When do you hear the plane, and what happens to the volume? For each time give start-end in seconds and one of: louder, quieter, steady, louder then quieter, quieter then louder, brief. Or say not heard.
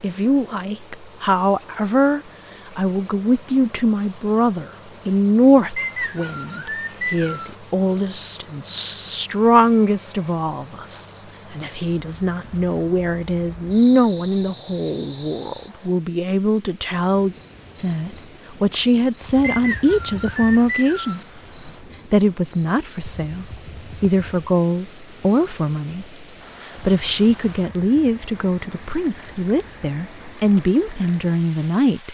not heard.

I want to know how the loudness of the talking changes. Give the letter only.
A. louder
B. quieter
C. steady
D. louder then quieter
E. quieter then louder
C.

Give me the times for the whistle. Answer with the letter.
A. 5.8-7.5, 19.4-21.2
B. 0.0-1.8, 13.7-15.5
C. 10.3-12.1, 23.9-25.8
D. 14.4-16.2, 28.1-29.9
A.